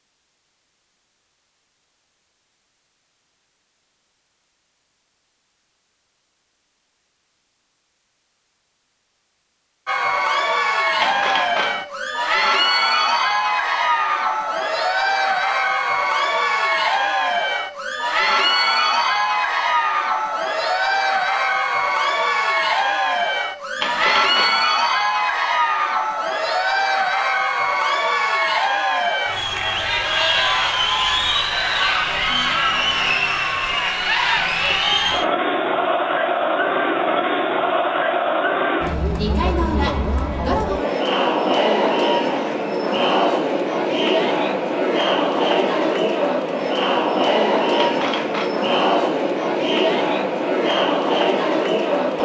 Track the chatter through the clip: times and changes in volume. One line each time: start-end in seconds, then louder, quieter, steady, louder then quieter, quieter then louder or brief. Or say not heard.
9.8-52.2 steady.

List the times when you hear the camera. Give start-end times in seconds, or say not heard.
11.0-11.8, 23.8-24.6, 47.8-48.6.